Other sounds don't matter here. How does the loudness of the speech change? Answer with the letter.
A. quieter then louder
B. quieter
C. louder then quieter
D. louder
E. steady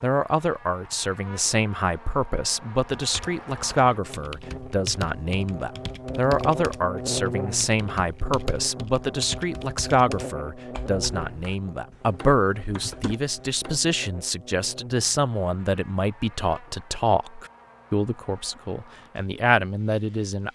E.